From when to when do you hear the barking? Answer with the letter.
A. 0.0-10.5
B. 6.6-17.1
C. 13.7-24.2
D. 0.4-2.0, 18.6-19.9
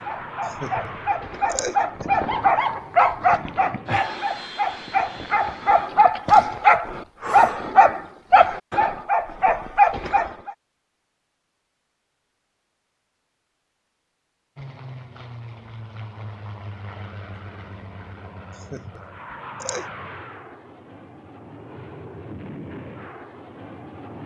A.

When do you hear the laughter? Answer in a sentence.
The laughter can be heard from 0.4 to 2.0 s and from 18.6 to 19.9 s.